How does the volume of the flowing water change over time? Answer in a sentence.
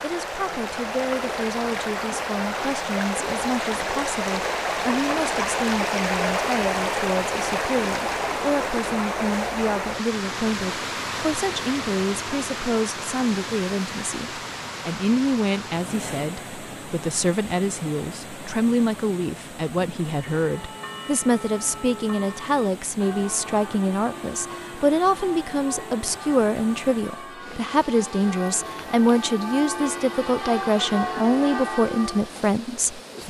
The loudness of the flowing water goes down.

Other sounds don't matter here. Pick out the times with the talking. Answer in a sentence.
The talking can be heard from 0.0 to 33.2 s.